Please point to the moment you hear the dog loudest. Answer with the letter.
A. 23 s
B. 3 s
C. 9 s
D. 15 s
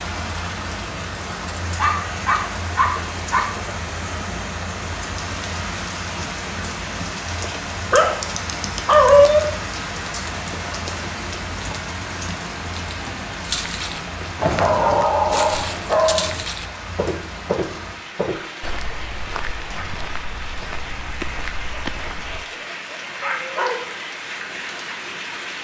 C.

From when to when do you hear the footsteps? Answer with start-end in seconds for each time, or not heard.
13.4-22.4.